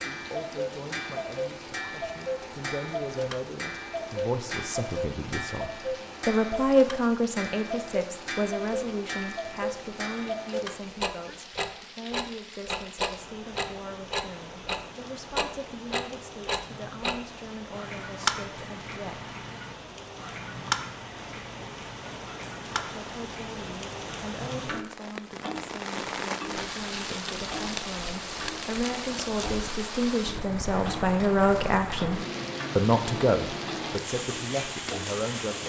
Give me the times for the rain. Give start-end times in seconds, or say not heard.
0.0-35.6.